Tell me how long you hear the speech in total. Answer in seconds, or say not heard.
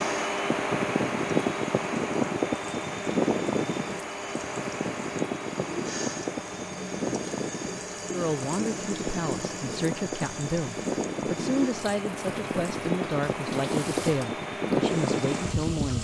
8 s.